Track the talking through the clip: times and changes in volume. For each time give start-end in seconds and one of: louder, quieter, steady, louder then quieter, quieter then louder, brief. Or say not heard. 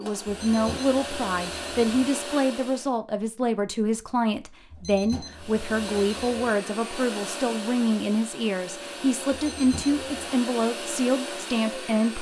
0.0-12.1 steady.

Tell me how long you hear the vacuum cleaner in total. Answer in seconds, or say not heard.
10 s.